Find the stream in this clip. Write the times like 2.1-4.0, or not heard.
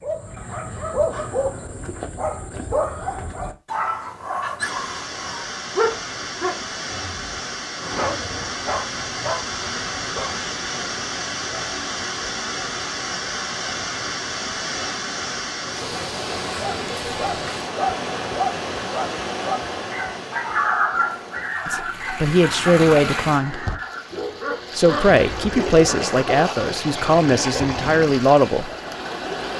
4.6-29.5.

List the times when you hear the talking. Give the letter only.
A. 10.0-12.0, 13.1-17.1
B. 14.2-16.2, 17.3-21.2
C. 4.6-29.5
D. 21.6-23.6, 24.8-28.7
D.